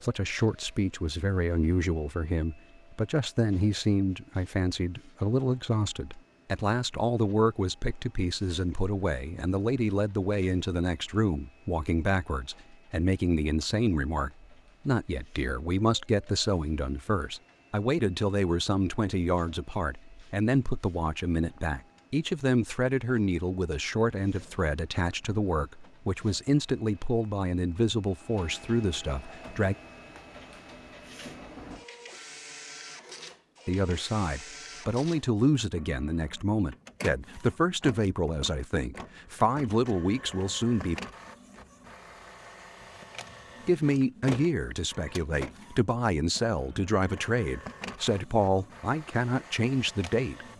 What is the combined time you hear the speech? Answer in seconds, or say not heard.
44 s.